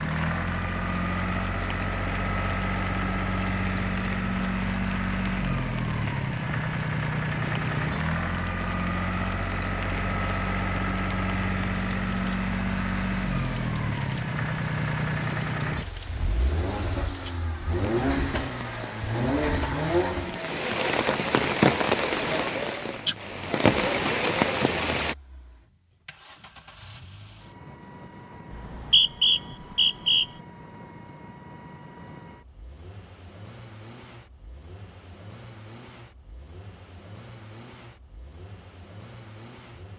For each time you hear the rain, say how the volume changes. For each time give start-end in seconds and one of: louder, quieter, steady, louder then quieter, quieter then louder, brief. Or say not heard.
0.0-25.1 louder.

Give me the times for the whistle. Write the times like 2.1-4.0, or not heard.
28.5-30.2.